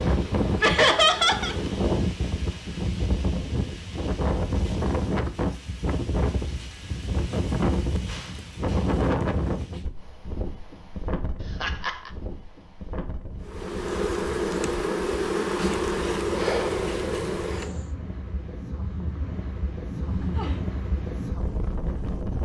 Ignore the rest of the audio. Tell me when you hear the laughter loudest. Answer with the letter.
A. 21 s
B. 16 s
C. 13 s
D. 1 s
D.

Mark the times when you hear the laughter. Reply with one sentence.
The laughter can be heard from 0.6 to 1.6 s, from 11.6 to 12.1 s and from 19.9 to 20.6 s.